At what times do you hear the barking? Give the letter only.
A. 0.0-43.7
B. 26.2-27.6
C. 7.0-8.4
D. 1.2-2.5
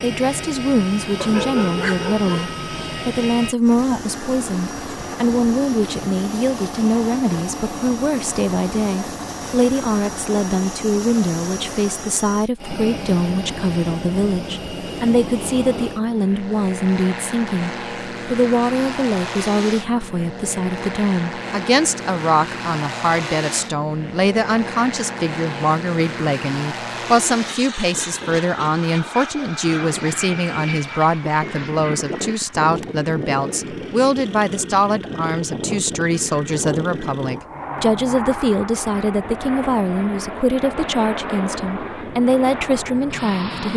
D.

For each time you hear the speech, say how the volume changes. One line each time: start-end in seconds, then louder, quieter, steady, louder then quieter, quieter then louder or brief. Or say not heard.
0.0-43.7 steady.